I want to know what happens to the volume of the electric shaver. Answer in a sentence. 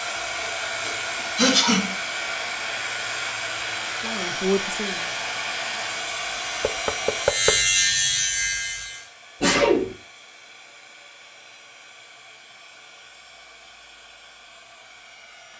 The loudness of the electric shaver goes up.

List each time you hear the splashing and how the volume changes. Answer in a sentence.
The splashing can't be heard in this clip.